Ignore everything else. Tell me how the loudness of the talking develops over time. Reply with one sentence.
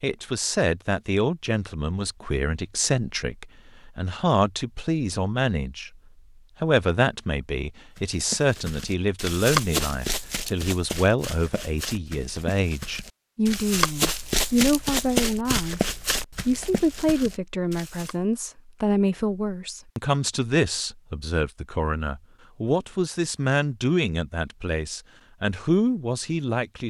The loudness of the talking stays about the same.